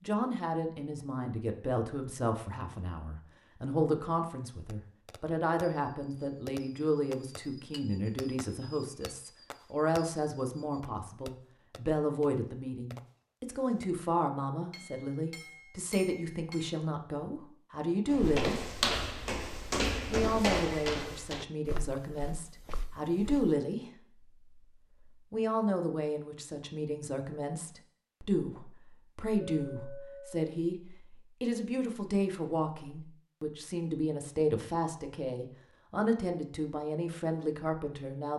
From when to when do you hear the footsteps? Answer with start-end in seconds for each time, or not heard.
18.1-23.5.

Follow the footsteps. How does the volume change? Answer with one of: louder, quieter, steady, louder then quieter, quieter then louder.
quieter.